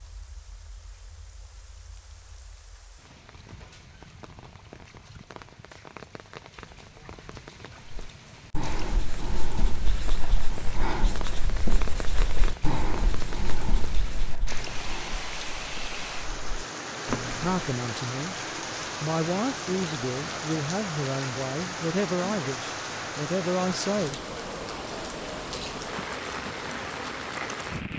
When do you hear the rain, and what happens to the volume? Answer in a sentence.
You can hear the rain from 0.0 to 27.9 s, getting louder.